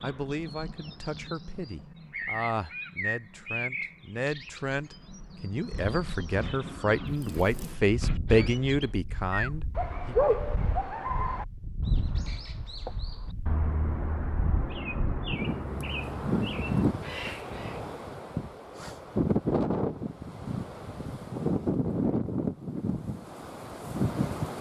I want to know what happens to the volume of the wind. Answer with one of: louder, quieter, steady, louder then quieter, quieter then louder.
louder.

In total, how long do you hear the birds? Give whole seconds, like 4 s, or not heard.
18 s.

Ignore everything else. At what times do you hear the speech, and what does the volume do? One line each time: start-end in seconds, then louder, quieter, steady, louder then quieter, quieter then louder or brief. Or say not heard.
0.0-10.3 louder.